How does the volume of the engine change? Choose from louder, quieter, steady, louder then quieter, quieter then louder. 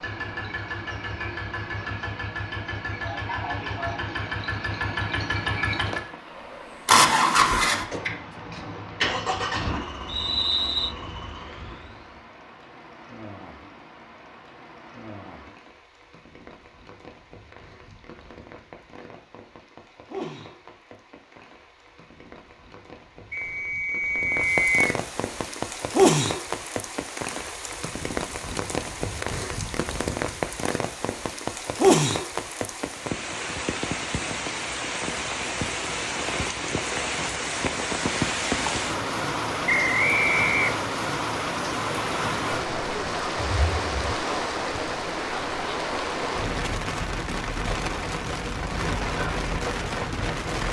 louder then quieter.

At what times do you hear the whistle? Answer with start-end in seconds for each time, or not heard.
10.1-10.9, 23.3-24.8, 39.6-40.8.